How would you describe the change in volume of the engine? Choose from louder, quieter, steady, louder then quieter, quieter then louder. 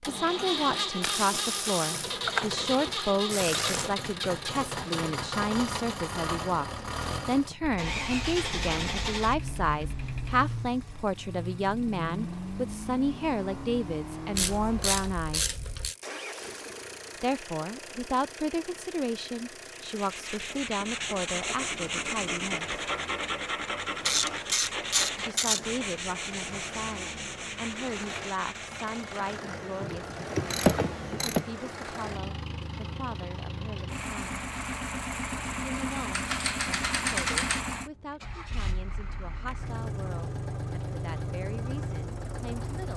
quieter then louder.